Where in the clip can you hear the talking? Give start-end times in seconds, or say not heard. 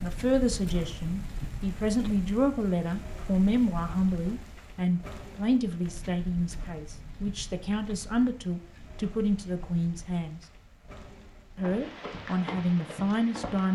0.0-10.4, 11.6-13.7.